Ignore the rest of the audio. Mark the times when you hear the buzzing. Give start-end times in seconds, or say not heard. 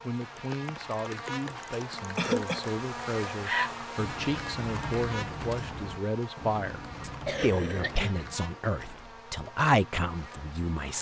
0.0-10.9.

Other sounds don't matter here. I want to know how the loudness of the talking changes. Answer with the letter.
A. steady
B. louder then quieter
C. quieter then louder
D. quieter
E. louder
E.